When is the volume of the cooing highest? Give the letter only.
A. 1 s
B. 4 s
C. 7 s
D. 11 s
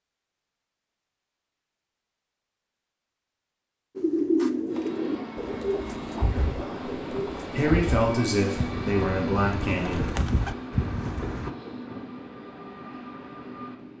B.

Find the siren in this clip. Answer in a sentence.
You can't hear the siren here.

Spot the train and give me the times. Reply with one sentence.
The train can be heard from 4.7 to 13.9 s.